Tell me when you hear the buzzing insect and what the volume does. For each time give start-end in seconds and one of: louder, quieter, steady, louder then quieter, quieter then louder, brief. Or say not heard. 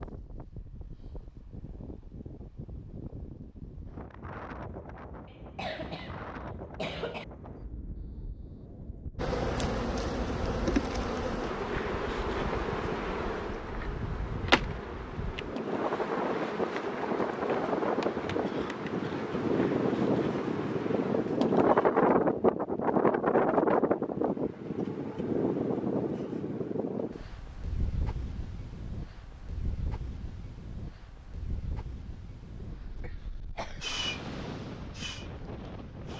9.2-21.9 quieter
33.8-36.1 brief.